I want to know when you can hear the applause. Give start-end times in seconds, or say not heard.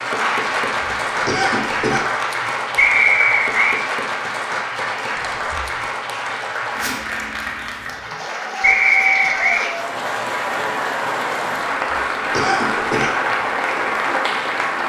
0.0-14.8.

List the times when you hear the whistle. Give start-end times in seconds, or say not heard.
2.8-3.8, 8.6-9.7.